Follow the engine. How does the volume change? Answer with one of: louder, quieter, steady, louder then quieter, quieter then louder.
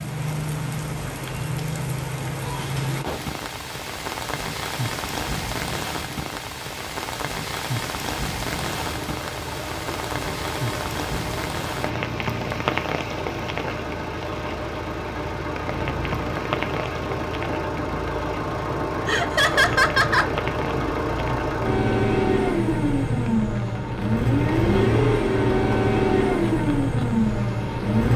louder.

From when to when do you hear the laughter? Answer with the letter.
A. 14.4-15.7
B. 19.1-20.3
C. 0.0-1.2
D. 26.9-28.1
B.